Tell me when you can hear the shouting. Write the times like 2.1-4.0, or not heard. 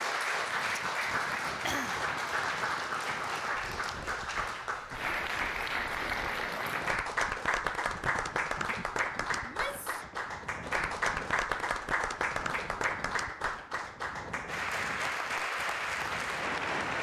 9.4-10.0.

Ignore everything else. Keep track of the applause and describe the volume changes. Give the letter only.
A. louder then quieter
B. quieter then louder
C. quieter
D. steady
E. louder
D.